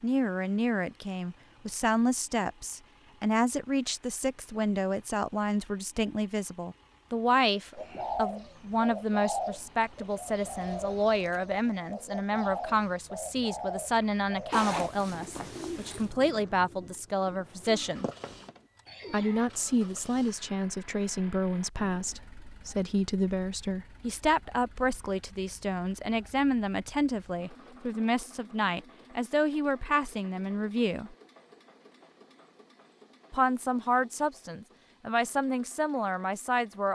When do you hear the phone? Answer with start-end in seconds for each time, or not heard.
not heard.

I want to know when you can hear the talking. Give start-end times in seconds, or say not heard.
0.0-18.1, 19.1-31.1, 33.3-36.9.